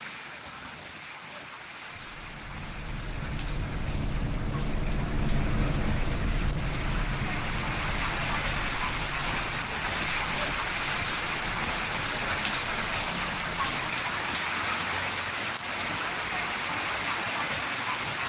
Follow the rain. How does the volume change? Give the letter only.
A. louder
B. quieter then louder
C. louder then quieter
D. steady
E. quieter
A.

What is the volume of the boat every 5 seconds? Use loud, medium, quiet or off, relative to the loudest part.
loud, loud, quiet, off.